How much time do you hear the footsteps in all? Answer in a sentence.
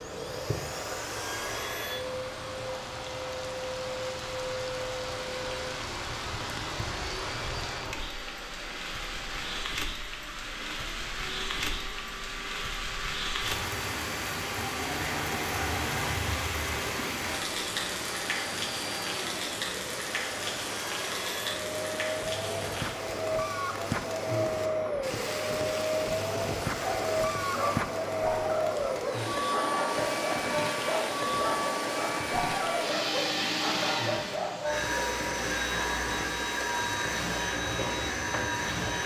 You can't hear the footsteps here.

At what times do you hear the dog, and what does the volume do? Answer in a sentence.
You can hear the dog from 26.8 to 34.8 s, at a steady volume.